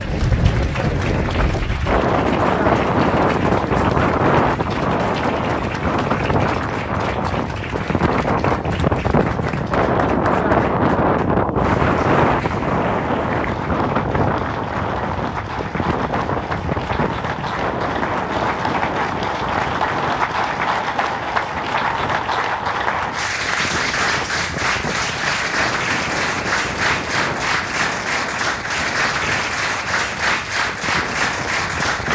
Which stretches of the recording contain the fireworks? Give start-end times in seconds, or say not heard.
not heard.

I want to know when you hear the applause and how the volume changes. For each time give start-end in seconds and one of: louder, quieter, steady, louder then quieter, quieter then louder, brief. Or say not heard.
0.0-32.0 louder.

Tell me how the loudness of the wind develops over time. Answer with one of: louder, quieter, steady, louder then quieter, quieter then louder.
quieter.